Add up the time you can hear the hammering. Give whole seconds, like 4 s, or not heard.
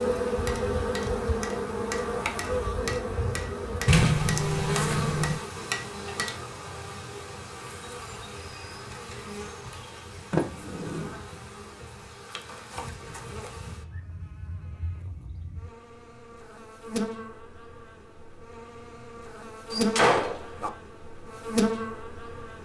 6 s.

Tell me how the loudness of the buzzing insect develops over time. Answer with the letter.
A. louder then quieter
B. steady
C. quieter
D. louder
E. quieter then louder
E.